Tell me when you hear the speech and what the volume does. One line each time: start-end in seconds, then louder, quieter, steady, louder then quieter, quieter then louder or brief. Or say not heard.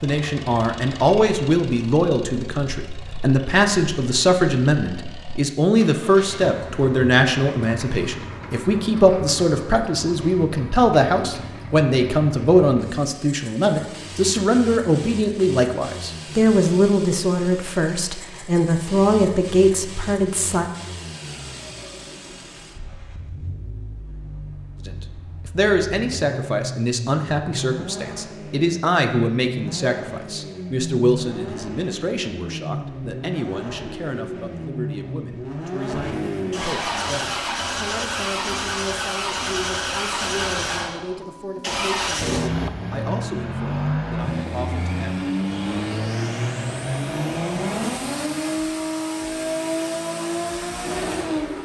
0.0-20.7 steady
24.8-45.2 quieter.